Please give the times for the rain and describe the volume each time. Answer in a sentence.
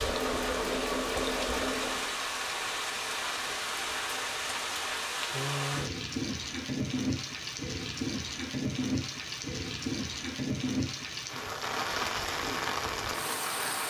The rain can be heard from 0.0 to 13.8 s, at a steady volume.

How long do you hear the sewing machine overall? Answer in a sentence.
You can hear the sewing machine for 2 seconds altogether.